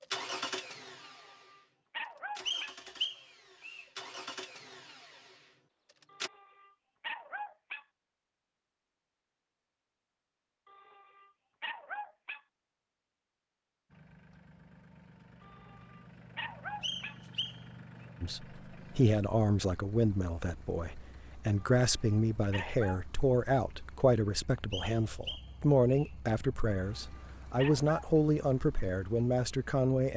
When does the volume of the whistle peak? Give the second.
3 s.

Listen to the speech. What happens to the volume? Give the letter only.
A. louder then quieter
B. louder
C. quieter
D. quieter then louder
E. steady
E.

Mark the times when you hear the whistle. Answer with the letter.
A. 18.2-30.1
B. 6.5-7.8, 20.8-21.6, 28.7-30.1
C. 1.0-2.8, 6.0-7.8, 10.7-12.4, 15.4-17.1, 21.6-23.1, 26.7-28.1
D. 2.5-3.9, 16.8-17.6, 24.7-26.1
D.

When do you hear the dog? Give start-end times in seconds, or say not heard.
1.0-2.8, 6.0-7.8, 10.7-12.4, 15.4-17.1, 21.6-23.1, 26.7-28.1.